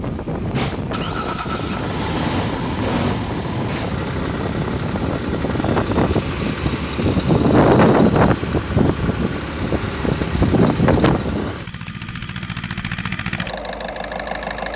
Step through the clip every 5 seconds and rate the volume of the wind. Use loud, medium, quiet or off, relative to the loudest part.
medium, loud, loud.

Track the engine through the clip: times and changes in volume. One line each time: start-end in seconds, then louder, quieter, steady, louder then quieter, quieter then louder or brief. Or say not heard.
0.0-14.7 steady.